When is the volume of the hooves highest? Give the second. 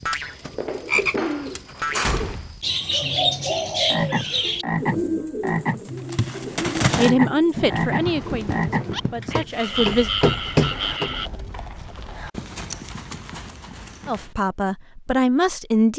7 s.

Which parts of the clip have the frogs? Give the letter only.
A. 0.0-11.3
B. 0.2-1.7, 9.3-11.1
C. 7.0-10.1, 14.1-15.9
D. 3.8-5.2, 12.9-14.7
A.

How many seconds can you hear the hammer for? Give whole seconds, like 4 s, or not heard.
3 s.